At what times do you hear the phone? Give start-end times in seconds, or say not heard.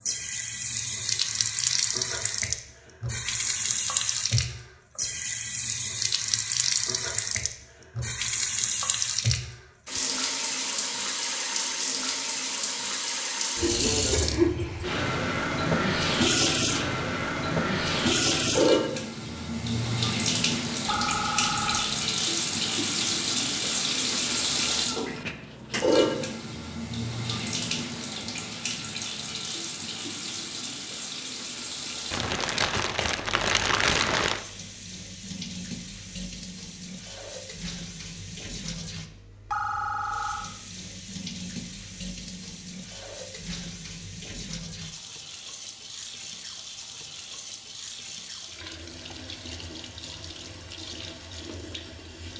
20.9-21.9, 39.5-40.5.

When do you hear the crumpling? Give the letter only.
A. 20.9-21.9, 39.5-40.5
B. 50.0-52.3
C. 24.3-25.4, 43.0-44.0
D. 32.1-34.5
D.